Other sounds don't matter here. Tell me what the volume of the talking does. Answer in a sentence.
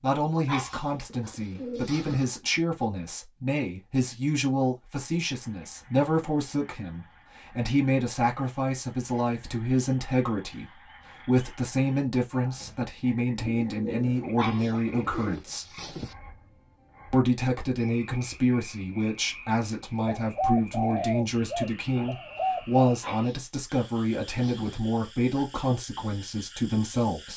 The volume of the talking stays about the same.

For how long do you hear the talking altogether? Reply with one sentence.
The talking can be heard for 26 seconds in total.